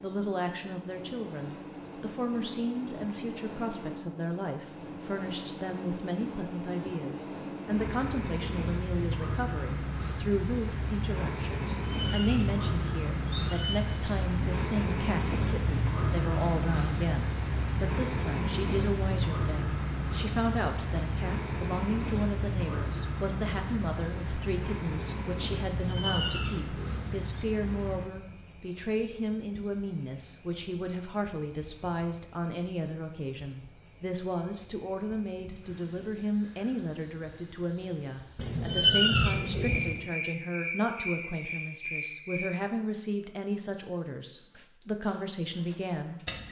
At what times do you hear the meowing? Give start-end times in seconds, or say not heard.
11.6-13.8, 25.6-27.2, 38.4-40.0.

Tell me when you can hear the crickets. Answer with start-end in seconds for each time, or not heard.
0.0-46.4.